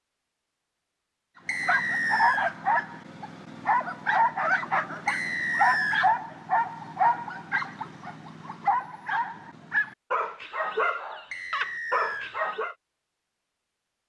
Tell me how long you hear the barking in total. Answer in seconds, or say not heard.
11 s.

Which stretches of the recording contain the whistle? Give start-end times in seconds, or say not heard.
1.4-2.5, 5.0-6.1, 11.3-12.3.